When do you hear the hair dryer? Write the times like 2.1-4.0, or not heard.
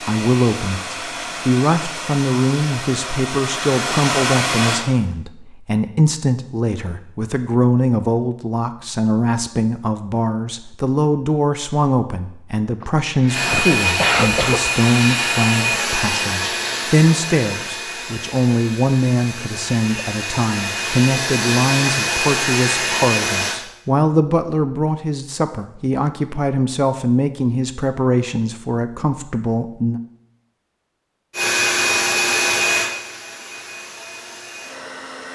0.0-4.8, 13.2-23.6, 31.3-35.3.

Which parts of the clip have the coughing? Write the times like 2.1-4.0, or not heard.
12.8-14.7.